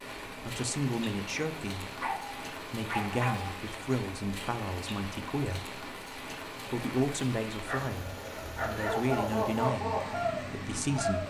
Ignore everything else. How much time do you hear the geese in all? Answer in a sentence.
The geese can be heard for 3 seconds in total.